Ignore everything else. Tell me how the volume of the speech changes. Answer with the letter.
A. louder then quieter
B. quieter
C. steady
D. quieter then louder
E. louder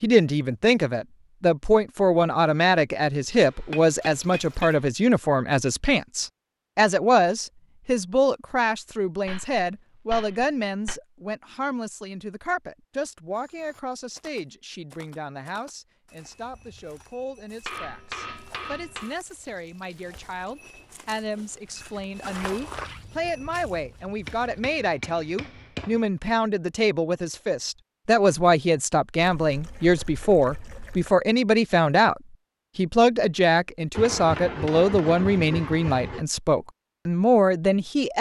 D.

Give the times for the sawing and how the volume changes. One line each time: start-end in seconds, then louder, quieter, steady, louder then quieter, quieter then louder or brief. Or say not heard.
not heard.